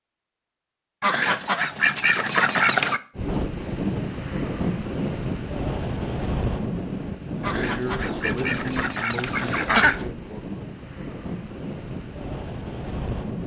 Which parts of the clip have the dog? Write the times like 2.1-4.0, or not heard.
not heard.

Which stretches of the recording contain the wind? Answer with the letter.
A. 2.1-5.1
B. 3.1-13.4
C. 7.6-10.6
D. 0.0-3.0
B.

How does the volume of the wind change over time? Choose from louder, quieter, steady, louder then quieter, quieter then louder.
quieter.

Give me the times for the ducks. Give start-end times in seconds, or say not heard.
1.0-3.0, 7.4-10.1.